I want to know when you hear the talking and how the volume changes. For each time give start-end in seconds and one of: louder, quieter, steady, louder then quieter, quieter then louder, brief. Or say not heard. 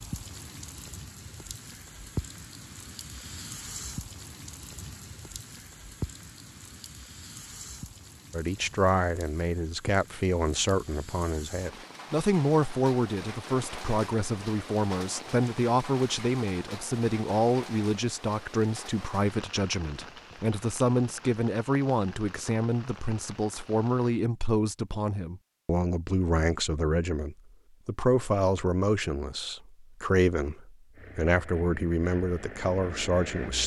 8.3-33.6 steady.